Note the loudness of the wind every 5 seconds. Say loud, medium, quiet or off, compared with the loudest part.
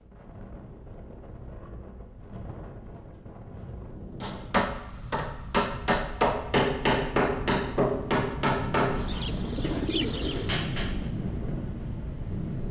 medium, loud, loud.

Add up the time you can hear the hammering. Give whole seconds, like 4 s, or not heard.
7 s.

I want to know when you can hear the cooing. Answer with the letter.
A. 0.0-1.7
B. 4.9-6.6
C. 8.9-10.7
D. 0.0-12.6
C.